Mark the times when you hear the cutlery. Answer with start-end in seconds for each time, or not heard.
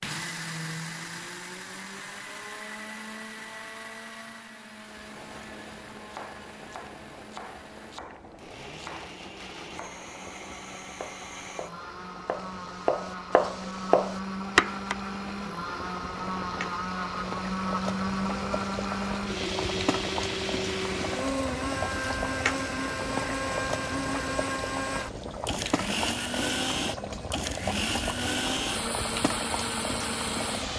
not heard.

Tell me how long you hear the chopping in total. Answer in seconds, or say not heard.
10 s.